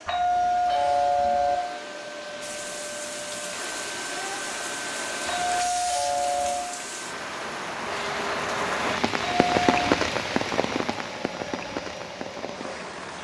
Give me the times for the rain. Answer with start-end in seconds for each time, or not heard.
2.4-13.1.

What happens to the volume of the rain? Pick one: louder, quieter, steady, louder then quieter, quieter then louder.
louder then quieter.